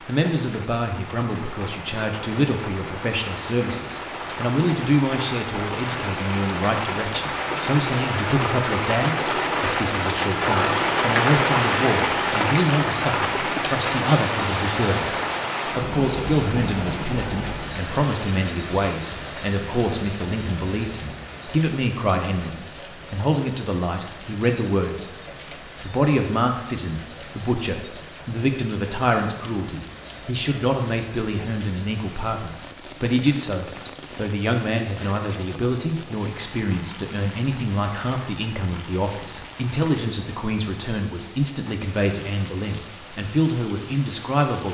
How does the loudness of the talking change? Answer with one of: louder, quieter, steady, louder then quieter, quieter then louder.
steady.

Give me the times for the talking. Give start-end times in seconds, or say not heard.
0.0-44.6.